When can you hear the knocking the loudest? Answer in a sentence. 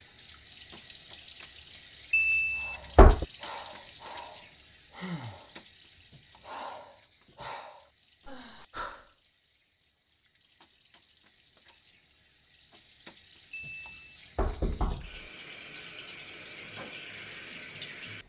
The loudest moment of the knocking is at 3 seconds.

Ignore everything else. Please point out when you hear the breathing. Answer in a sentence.
You can hear the breathing from 2.5 to 9.1 s.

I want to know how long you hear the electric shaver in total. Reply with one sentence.
The electric shaver can't be heard in this clip.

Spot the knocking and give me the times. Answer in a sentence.
The knocking can be heard from 2.1 to 3.2 s and from 13.5 to 15.2 s.